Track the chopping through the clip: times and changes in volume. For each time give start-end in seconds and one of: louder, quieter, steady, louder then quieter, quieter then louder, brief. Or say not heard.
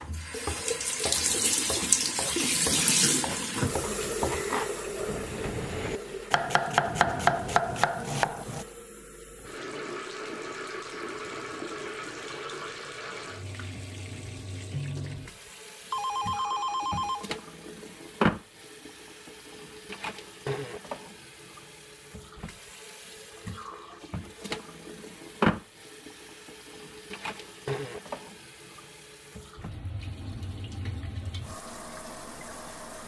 0.0-8.7 louder.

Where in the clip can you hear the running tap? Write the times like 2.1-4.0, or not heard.
0.1-33.0.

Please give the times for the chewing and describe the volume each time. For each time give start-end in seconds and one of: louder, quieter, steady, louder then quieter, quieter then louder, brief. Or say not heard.
not heard.